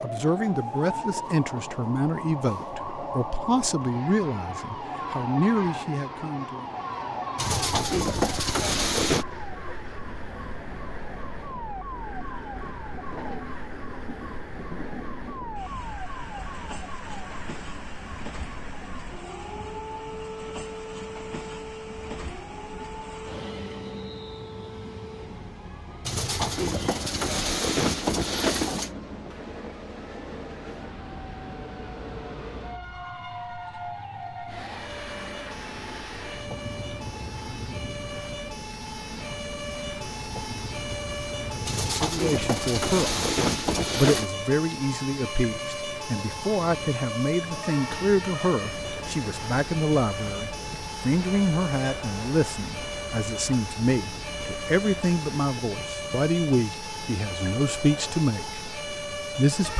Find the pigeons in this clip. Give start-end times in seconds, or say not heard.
7.3-9.2, 26.1-28.9, 41.6-44.3.